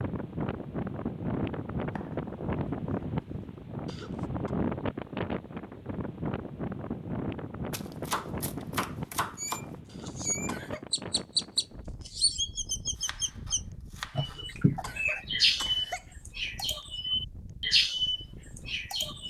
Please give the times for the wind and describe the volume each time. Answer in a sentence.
You can hear the wind from 0.0 to 19.2 s, getting quieter.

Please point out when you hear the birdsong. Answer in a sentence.
You can hear the birdsong from 9.3 to 19.2 s.